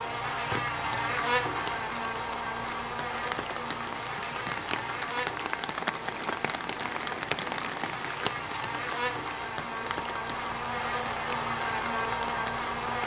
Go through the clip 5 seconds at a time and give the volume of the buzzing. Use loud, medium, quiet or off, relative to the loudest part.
loud, medium, loud.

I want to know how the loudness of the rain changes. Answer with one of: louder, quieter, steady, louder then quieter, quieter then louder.
louder then quieter.